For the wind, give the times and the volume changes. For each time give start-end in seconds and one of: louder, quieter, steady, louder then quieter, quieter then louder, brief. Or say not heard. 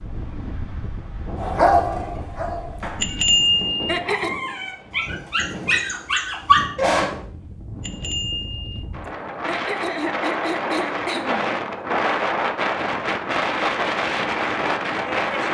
0.0-15.4 louder.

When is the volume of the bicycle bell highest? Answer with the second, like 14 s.
3 s.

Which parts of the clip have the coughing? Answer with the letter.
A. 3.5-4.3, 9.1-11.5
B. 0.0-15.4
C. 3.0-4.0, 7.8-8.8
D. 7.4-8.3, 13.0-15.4
A.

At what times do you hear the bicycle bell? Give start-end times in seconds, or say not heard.
3.0-4.0, 7.8-8.8.